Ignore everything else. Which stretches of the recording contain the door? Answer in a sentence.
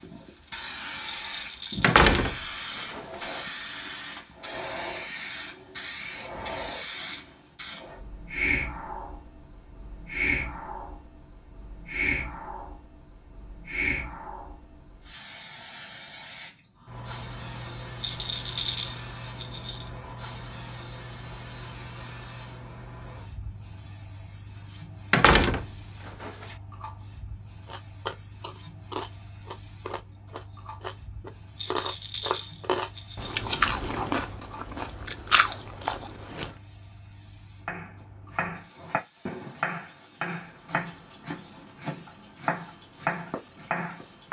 You can hear the door from 1.8 to 3.2 s and from 25.1 to 26.6 s.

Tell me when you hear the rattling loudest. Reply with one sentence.
The loudest moment of the rattling is at 19 seconds.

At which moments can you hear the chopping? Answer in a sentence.
You can hear the chopping from 37.6 to 44.2 s.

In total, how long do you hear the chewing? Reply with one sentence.
The chewing can be heard for 9 seconds in total.